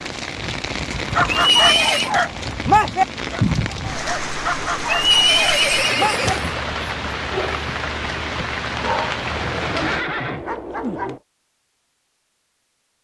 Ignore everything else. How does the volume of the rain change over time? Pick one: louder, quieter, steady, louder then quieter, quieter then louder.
steady.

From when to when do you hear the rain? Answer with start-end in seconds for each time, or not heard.
0.0-10.1.